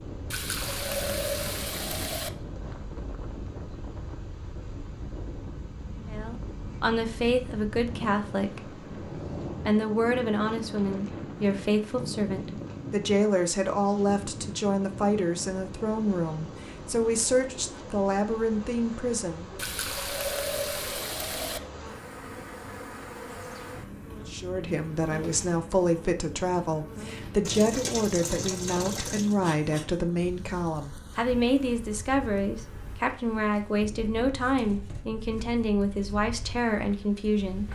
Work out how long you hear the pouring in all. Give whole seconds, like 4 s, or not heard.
6 s.